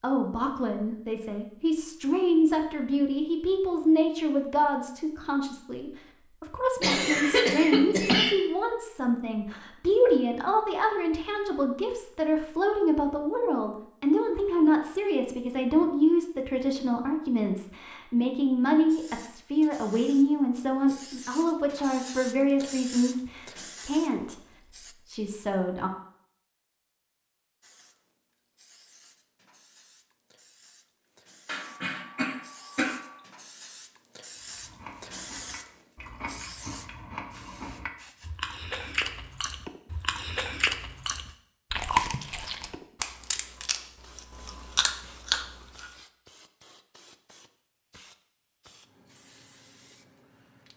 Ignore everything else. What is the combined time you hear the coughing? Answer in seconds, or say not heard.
3 s.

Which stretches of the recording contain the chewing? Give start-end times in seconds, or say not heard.
34.5-45.9.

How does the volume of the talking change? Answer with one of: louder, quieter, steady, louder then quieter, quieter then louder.
steady.